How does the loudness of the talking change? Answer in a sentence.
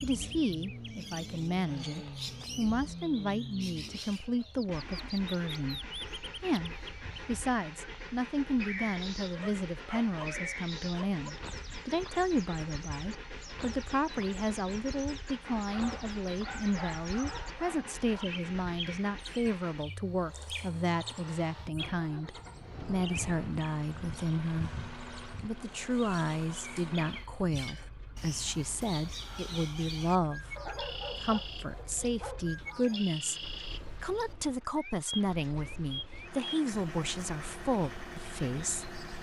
The volume of the talking stays about the same.